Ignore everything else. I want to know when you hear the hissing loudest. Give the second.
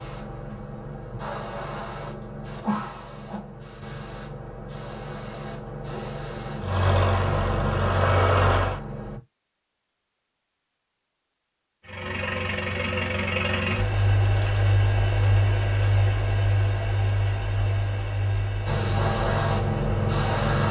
20 s.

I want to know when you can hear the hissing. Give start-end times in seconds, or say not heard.
0.0-9.2, 18.6-20.6.